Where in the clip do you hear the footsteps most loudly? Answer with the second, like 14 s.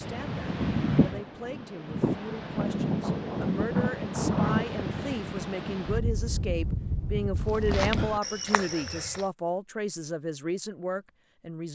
8 s.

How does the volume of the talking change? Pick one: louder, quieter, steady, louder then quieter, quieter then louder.
louder.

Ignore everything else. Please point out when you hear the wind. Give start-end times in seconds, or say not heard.
0.0-8.1.